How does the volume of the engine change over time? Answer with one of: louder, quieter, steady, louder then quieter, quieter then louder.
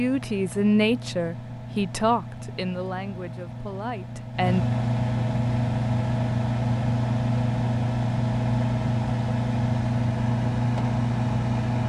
louder.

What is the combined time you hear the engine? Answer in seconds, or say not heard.
12 s.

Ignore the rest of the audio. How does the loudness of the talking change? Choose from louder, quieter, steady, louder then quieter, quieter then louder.
quieter.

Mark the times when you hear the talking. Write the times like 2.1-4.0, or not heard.
0.0-4.7.